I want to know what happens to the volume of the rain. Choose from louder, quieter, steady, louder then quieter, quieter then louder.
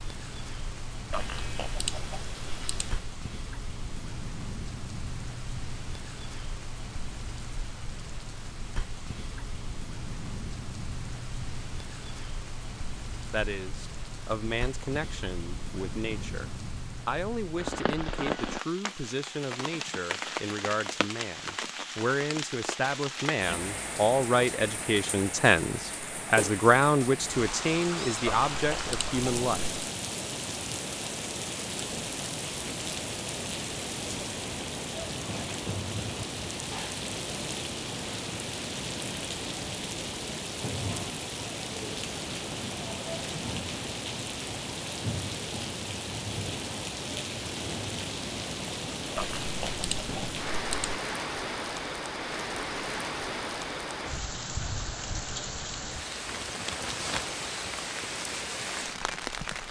louder.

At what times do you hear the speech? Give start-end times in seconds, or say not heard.
13.3-29.7.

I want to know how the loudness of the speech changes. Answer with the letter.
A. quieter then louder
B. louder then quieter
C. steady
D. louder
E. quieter
D.